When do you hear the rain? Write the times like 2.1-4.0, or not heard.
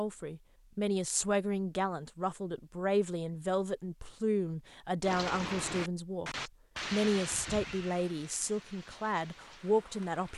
5.0-10.3.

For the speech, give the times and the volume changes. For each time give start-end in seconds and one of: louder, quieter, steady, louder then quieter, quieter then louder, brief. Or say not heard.
0.0-10.3 steady.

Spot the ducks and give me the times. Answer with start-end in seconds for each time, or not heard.
not heard.